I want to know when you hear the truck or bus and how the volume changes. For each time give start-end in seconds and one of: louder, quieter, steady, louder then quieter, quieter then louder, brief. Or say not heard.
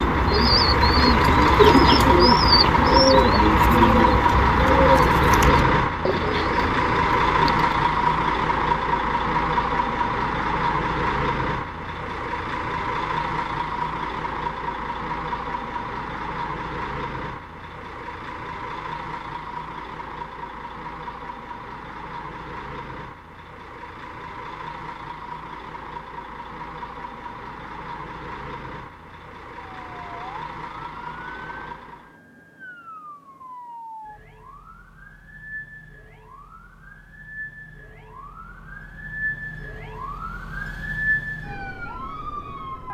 0.0-32.2 quieter.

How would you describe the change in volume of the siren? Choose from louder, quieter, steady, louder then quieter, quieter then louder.
louder.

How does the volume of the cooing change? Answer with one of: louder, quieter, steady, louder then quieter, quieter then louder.
quieter.